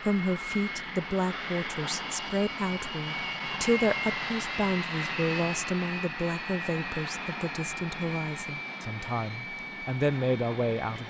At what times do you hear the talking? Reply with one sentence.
The talking can be heard from 0.0 to 11.0 s.